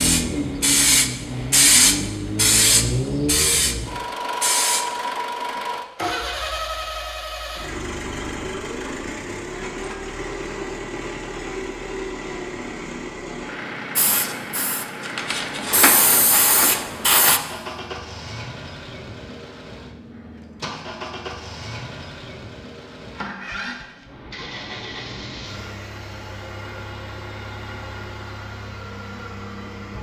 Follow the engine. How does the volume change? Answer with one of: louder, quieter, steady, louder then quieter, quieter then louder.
quieter.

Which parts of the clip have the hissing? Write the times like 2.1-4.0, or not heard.
0.0-5.8, 13.9-17.4.